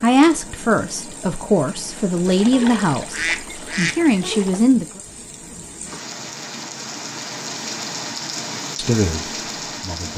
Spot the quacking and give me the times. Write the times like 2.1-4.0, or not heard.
2.2-4.7.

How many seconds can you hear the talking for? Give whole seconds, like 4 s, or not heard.
6 s.